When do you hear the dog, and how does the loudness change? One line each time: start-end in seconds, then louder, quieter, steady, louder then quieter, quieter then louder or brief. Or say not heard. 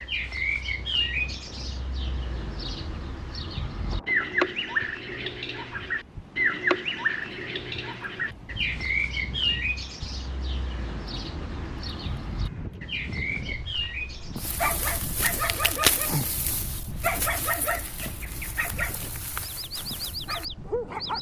14.3-21.1 quieter.